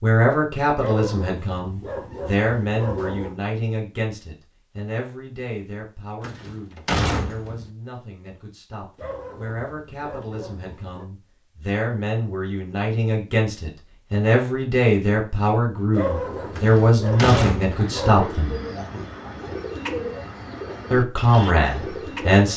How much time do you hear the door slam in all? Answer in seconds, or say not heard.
3 s.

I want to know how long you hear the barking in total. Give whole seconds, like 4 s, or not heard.
7 s.